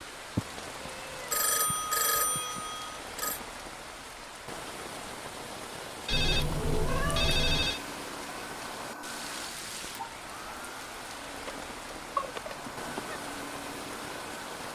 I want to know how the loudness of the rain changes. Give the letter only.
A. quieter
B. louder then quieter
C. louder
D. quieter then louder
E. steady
E.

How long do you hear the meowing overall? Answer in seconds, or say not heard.
5 s.